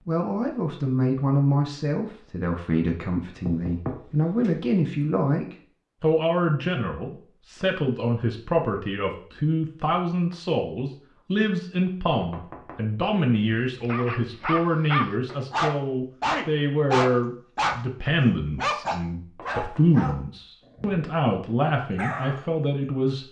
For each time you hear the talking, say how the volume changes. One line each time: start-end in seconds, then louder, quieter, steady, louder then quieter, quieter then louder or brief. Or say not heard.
0.1-23.2 steady.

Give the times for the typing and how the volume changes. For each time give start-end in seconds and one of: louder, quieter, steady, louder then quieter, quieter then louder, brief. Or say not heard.
not heard.